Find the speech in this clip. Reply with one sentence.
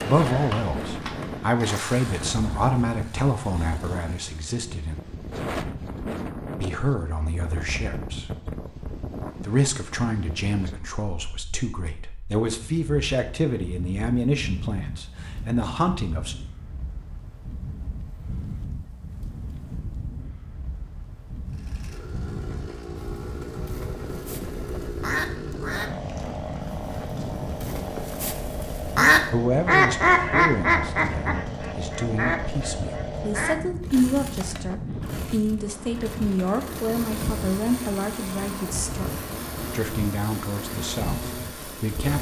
You can hear the speech from 0.0 to 5.0 s, from 6.5 to 8.6 s, from 9.4 to 16.4 s and from 29.3 to 42.1 s.